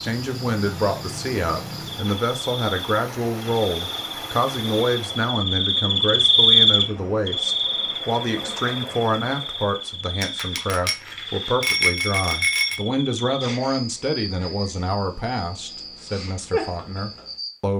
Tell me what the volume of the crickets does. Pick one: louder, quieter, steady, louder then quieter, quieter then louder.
louder then quieter.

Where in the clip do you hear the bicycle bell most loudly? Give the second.
12 s.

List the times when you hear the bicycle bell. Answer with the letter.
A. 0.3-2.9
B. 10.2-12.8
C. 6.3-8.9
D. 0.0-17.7
B.